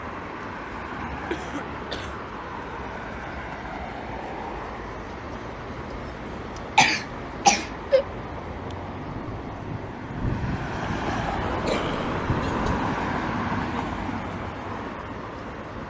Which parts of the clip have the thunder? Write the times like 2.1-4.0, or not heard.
9.1-12.7.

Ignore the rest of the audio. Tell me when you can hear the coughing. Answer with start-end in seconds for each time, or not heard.
1.3-2.1, 6.8-8.1, 11.7-12.9.